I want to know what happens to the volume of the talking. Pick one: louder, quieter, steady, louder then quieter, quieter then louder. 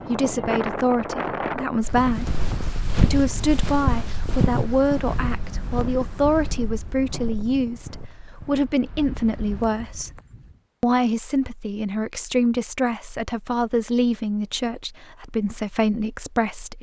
steady.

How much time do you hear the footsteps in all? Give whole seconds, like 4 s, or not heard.
7 s.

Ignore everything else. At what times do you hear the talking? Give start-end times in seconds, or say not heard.
0.1-10.2, 10.8-16.7.